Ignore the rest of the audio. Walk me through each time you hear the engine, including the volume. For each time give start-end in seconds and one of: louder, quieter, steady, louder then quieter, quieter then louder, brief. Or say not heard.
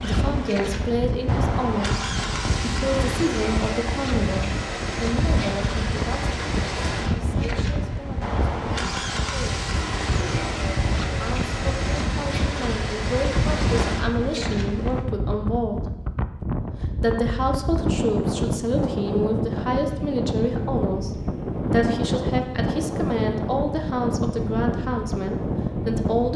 0.0-15.1 steady.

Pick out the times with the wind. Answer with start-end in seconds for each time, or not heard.
0.0-26.3.